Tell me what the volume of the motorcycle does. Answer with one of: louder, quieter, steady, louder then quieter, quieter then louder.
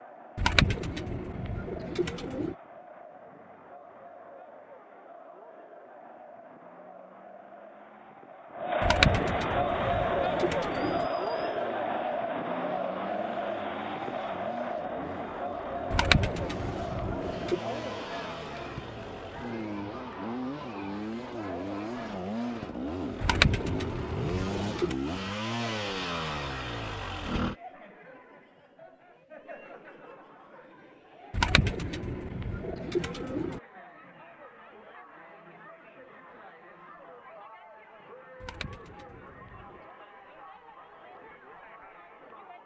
louder.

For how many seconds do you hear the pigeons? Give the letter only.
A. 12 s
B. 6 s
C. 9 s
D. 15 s
A.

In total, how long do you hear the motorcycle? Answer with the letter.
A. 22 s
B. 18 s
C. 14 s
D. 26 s
B.